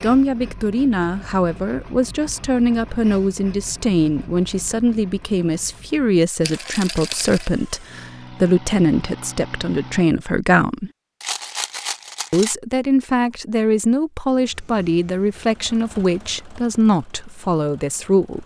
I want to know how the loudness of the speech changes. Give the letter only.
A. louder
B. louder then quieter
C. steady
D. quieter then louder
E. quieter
C.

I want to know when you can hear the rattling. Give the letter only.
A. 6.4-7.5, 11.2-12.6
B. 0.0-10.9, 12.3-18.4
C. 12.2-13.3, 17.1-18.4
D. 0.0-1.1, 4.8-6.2
A.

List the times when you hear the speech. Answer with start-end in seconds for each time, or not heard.
0.0-10.9, 12.3-18.4.